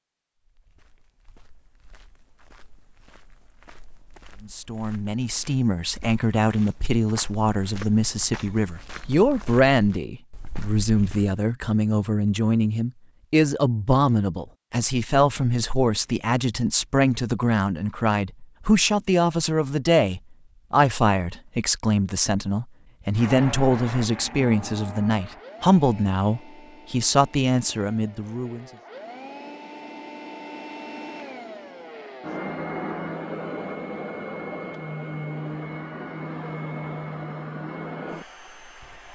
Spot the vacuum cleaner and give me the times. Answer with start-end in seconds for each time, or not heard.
23.1-39.0.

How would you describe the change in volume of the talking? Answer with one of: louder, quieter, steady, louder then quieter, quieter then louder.
steady.